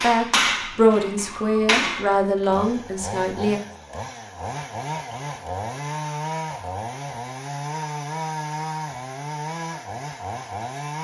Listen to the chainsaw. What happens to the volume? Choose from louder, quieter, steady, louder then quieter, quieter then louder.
louder.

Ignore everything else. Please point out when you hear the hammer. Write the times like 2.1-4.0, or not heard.
0.0-2.5.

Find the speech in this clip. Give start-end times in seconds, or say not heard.
0.0-3.6.